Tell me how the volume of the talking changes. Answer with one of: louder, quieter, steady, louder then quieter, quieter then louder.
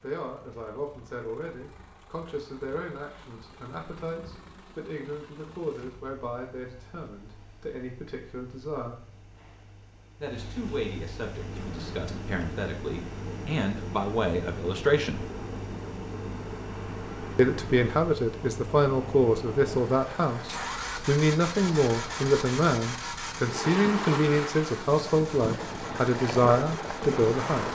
louder.